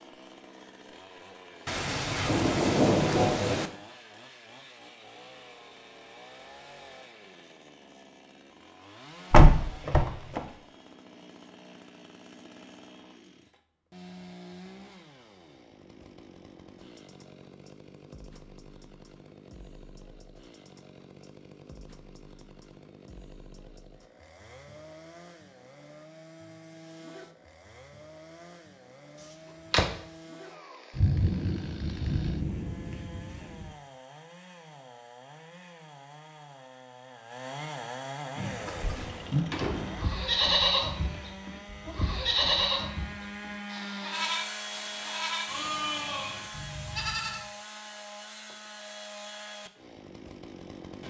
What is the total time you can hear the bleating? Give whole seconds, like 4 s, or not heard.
9 s.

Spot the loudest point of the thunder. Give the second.
3 s.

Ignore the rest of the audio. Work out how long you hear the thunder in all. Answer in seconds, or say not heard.
5 s.